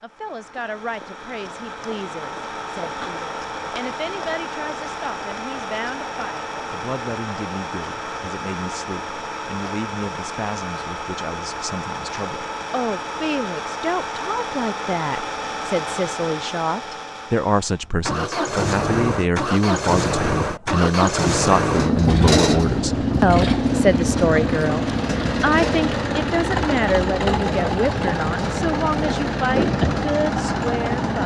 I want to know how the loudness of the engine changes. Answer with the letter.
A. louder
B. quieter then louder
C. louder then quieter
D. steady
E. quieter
A.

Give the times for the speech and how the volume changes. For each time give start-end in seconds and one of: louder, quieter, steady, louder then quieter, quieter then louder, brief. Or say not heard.
0.0-31.2 louder.